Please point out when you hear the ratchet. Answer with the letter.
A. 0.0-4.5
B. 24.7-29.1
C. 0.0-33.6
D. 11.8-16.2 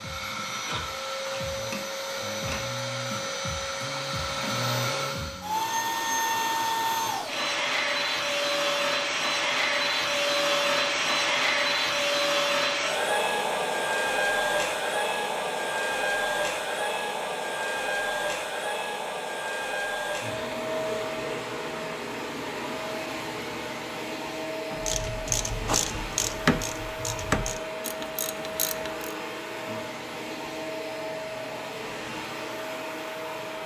B.